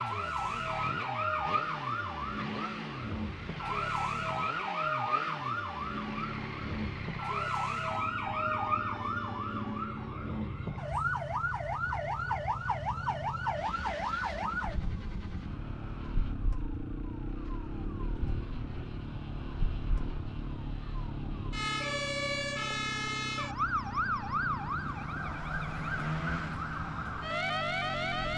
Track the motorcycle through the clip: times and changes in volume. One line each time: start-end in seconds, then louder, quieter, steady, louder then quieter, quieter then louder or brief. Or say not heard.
0.0-28.3 steady.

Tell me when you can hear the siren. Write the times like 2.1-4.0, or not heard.
0.0-28.3.